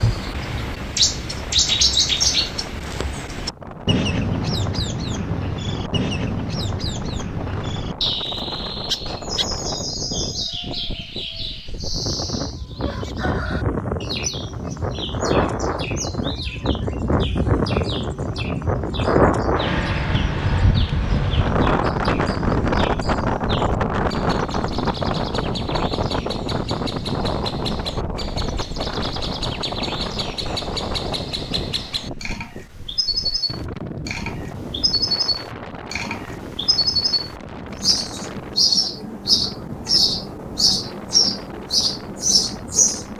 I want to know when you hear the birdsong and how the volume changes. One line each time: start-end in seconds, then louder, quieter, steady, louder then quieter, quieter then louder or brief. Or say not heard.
0.0-43.1 quieter then louder.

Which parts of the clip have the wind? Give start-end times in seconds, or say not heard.
0.0-43.1.